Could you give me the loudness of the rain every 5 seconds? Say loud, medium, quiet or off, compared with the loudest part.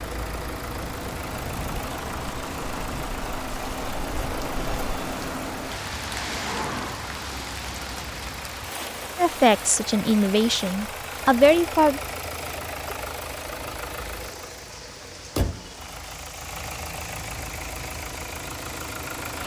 loud, loud, medium, medium.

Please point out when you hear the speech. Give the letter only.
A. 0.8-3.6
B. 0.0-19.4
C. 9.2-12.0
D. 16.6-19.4
C.